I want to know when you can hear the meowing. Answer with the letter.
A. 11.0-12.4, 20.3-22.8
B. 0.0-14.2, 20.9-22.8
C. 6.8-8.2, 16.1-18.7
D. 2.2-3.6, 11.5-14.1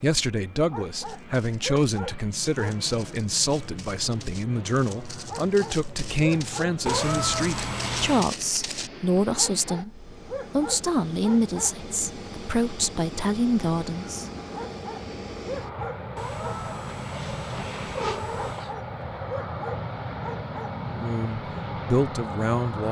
C.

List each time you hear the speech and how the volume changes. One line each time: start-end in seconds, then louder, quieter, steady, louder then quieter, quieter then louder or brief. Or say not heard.
0.0-14.2 steady
20.9-22.8 brief.